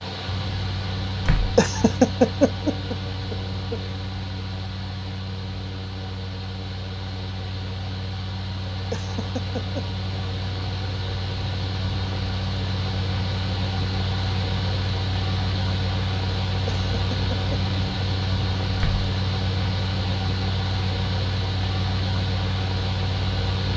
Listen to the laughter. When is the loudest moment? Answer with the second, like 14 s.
2 s.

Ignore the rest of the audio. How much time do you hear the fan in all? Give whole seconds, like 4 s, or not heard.
24 s.